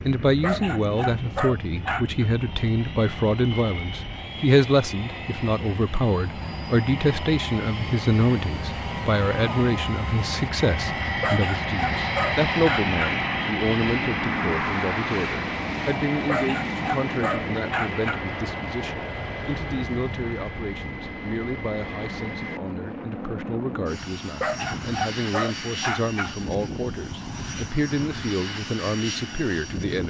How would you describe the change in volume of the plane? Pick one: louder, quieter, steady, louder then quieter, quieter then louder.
louder then quieter.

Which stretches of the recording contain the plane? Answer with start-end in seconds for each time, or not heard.
0.0-30.0.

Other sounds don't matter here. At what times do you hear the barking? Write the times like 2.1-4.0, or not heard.
0.4-2.2, 11.2-13.0, 16.2-18.2, 24.4-26.4.